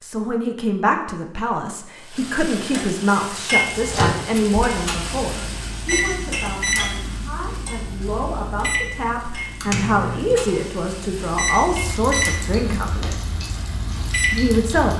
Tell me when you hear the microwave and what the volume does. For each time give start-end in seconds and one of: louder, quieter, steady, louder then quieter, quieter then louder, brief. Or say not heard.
3.6-14.8 steady.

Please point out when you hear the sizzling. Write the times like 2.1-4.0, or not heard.
2.0-14.9.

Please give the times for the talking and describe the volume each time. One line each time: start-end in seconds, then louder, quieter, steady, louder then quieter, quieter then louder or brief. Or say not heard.
0.0-13.2 quieter then louder
14.3-14.9 brief.